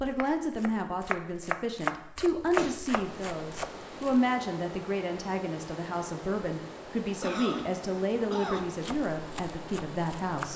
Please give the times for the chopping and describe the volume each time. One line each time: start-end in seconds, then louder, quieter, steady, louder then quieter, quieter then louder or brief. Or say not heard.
0.0-4.2 louder then quieter
8.8-10.5 brief.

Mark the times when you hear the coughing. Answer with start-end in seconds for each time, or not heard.
2.2-2.9, 7.2-8.8.